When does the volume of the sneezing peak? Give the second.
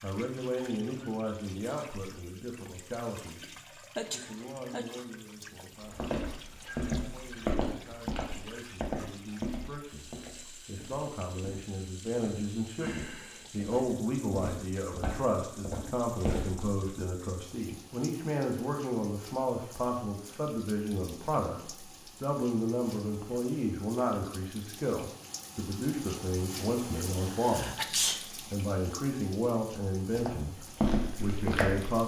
28 s.